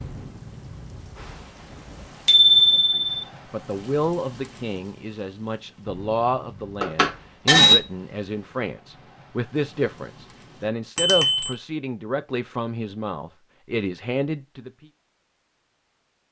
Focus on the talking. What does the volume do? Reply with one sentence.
The volume of the talking stays about the same.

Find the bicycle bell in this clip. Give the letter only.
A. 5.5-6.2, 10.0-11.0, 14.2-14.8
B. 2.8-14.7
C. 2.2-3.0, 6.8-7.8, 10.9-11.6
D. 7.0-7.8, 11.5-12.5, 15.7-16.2
C.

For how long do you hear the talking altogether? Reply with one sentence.
The talking can be heard for 12 seconds in total.